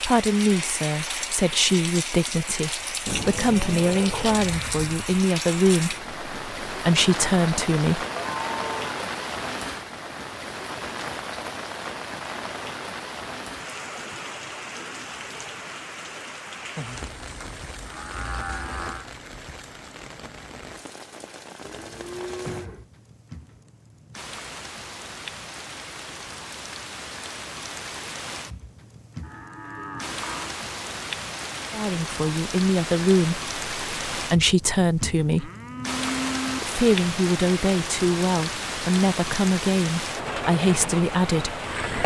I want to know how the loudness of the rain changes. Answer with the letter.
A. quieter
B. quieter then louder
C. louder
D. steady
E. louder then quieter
B.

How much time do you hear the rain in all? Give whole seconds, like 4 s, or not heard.
42 s.